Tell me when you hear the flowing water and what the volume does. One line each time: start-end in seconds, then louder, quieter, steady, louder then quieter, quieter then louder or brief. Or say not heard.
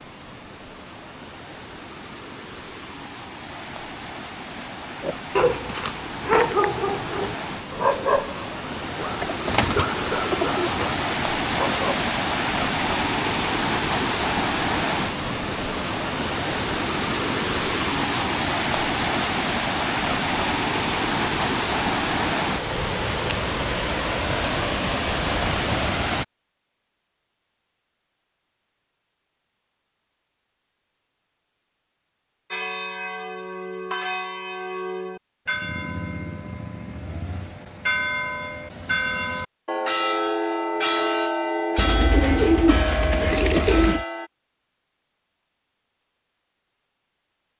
0.0-26.2 louder.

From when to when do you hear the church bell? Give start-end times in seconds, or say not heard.
32.5-44.3.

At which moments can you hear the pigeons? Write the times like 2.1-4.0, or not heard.
9.2-10.9, 41.8-44.0.